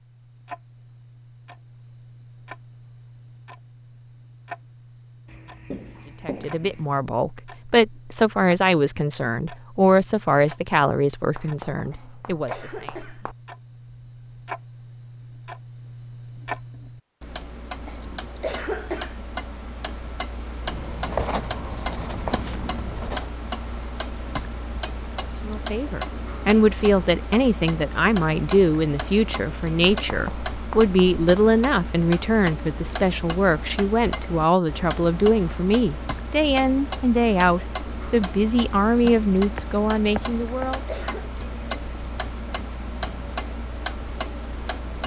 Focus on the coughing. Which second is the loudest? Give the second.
19 s.